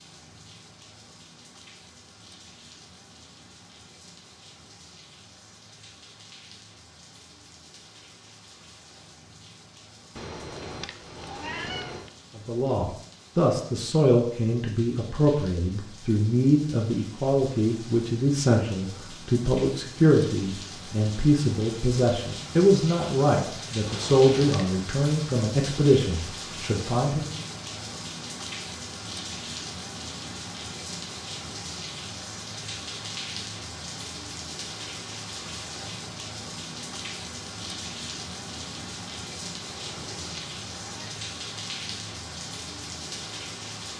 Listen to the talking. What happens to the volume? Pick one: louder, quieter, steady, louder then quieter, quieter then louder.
steady.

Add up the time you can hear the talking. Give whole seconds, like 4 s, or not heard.
15 s.